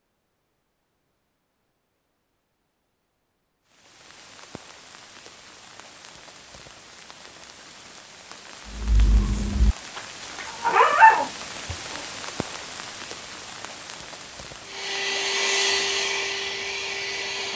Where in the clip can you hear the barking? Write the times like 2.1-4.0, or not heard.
8.8-12.0.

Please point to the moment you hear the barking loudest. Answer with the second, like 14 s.
11 s.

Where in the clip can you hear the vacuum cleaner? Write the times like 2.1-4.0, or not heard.
14.6-17.5.